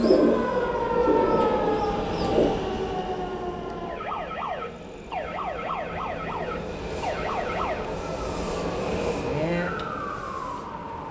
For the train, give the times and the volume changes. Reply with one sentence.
You can hear the train from 0.0 to 11.0 s, getting quieter then louder.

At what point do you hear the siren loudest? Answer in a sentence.
The volume of the siren peaks at 1 second.